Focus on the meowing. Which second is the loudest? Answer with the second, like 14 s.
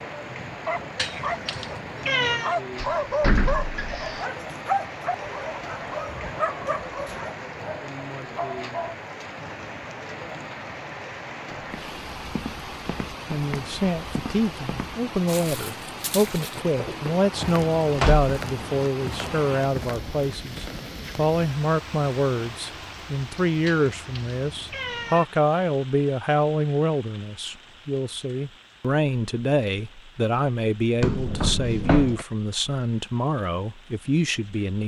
2 s.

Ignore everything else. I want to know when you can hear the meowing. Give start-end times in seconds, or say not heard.
0.9-2.5, 23.6-25.2.